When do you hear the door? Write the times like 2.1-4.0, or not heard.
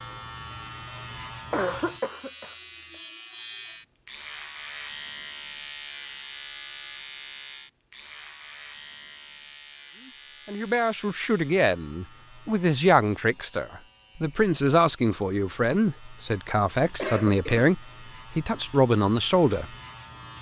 not heard.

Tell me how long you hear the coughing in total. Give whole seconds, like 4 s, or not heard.
2 s.